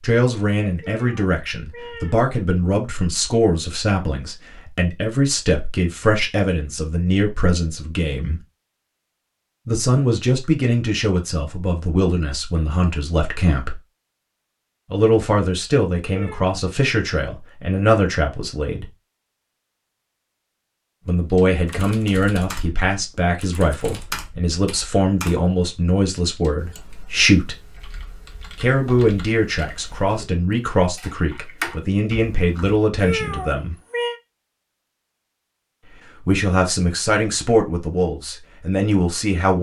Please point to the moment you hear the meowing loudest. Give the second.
33 s.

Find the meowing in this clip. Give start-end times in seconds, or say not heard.
0.8-2.3, 16.1-16.6, 33.0-34.2.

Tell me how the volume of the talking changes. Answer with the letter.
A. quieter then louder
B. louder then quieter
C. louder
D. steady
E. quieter
D.